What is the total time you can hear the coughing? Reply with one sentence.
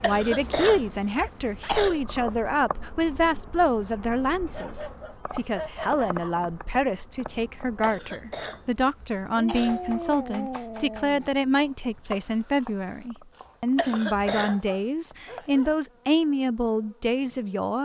The coughing can be heard for 5 seconds in total.